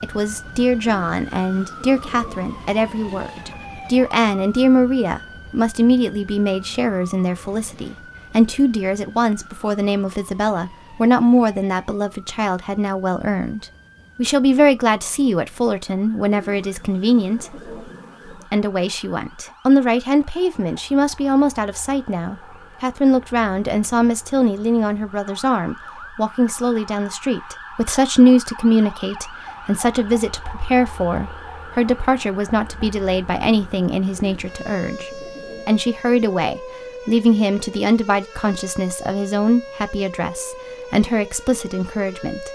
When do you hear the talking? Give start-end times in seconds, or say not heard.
0.0-17.6, 18.5-42.5.